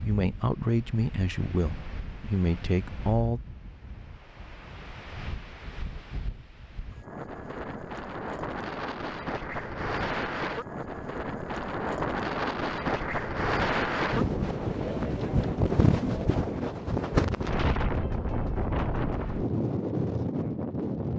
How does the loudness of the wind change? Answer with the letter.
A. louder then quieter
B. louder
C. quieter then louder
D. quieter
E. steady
B.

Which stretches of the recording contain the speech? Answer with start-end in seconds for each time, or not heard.
0.0-3.4.